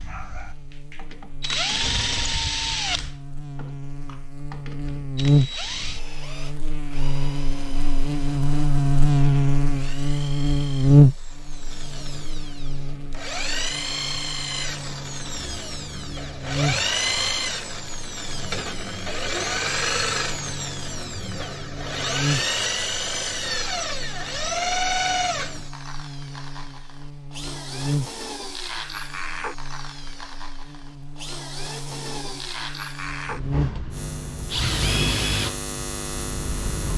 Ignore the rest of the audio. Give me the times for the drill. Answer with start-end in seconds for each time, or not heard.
0.0-36.9.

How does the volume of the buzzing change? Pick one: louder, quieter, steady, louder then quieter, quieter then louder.
louder then quieter.